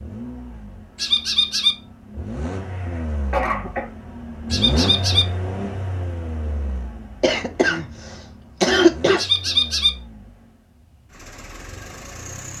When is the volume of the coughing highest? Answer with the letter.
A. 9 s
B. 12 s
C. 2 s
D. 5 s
A.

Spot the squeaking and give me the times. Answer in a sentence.
You can hear the squeaking from 0.9 to 1.8 s, from 4.5 to 5.2 s and from 9.2 to 9.9 s.